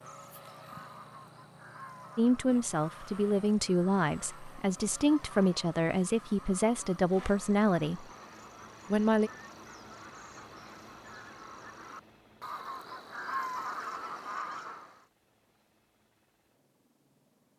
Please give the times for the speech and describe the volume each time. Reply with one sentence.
The speech can be heard from 2.1 to 8.1 s, at a steady volume; and briefly from 8.9 to 9.3 s.